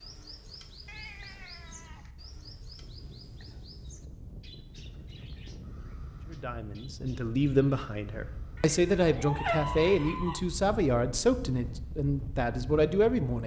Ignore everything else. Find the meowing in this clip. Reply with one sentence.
The meowing can be heard from 0.8 to 2.1 s and from 8.6 to 10.4 s.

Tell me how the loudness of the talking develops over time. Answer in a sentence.
The loudness of the talking stays about the same.